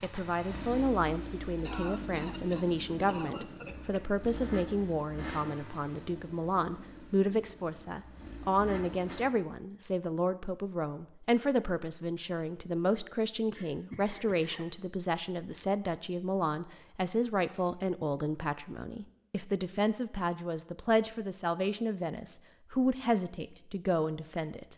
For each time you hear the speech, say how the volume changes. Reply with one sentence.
You can hear the speech from 0.0 to 24.7 s, at a steady volume.